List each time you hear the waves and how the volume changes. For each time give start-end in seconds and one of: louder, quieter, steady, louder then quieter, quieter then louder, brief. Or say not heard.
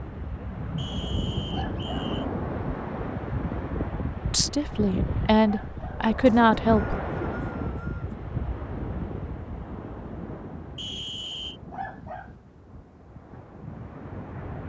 0.0-14.6 quieter.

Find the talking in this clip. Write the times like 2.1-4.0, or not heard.
4.3-7.0.